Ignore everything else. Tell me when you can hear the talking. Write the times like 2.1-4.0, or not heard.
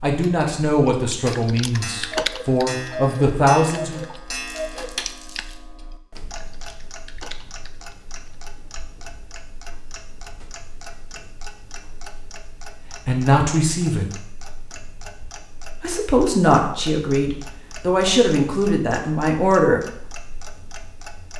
0.0-4.0, 13.1-14.1, 15.8-20.0.